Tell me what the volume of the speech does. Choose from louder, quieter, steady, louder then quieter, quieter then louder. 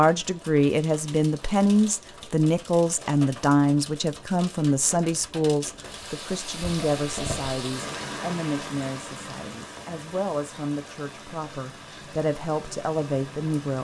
quieter.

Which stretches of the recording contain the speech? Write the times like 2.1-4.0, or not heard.
0.0-13.7.